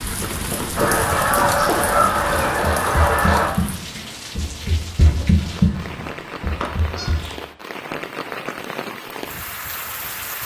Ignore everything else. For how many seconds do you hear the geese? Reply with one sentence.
You can hear the geese for 5 seconds altogether.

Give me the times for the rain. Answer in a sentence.
The rain can be heard from 0.0 to 10.4 s.